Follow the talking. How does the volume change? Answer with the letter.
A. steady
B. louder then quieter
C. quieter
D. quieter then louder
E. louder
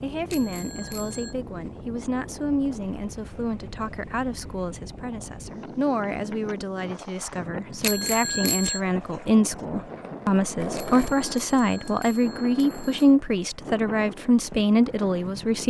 E.